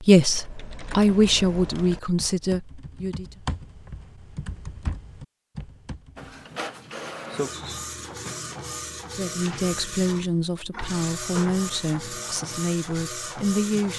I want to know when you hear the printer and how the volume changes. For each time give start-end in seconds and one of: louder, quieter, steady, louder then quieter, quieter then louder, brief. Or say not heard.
6.2-13.9 steady.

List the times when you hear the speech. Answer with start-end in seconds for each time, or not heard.
0.0-3.4, 9.2-13.9.